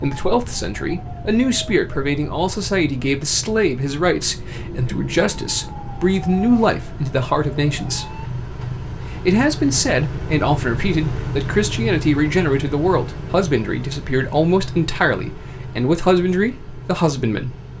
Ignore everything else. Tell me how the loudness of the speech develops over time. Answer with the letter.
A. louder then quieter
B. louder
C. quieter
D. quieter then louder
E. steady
E.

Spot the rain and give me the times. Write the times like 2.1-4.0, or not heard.
not heard.